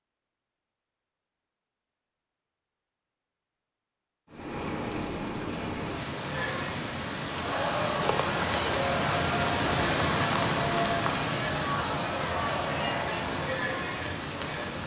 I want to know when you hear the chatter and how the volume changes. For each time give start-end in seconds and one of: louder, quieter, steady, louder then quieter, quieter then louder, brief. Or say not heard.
6.2-14.8 steady.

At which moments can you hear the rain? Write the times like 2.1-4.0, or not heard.
4.3-14.8.